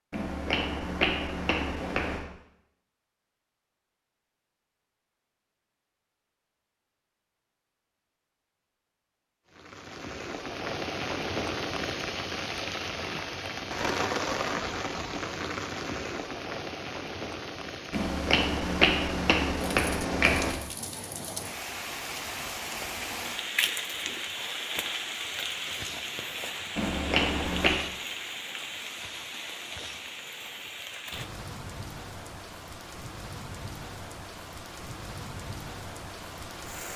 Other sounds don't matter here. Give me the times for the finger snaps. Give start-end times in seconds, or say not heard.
0.1-2.2, 17.9-20.6, 26.8-27.8.